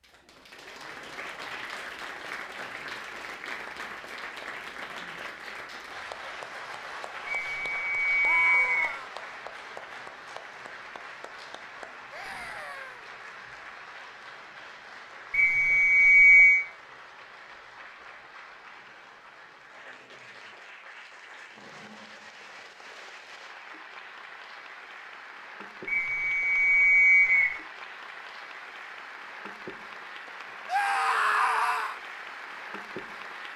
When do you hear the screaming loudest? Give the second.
31 s.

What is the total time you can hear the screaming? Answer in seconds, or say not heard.
3 s.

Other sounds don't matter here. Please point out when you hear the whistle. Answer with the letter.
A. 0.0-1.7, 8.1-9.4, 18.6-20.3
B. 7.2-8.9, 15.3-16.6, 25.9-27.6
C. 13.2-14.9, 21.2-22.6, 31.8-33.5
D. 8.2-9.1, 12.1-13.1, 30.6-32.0
B.